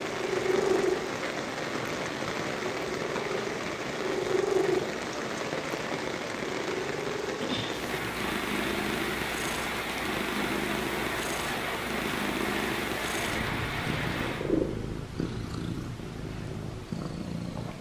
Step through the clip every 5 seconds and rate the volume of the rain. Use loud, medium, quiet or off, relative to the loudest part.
loud, loud, loud, off.